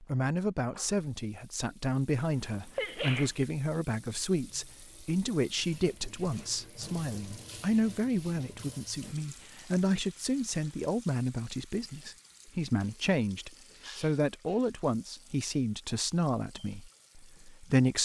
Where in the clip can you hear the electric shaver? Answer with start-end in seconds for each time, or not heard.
not heard.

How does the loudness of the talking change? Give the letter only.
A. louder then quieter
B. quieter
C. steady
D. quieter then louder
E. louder
C.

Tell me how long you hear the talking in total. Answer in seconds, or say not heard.
18 s.